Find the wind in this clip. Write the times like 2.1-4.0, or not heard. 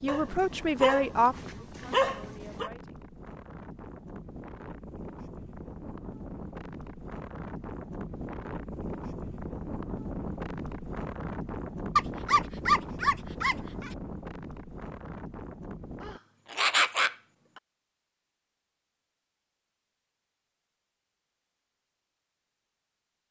0.0-16.2.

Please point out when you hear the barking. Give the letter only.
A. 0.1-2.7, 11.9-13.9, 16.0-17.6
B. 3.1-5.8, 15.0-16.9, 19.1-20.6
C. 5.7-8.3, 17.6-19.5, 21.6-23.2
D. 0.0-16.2
A.